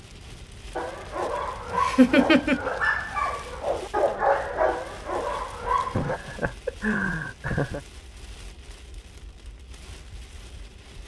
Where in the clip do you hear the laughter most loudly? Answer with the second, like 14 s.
2 s.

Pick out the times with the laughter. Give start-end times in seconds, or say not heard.
1.7-2.7, 5.9-7.8.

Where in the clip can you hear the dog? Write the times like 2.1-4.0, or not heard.
0.8-6.2.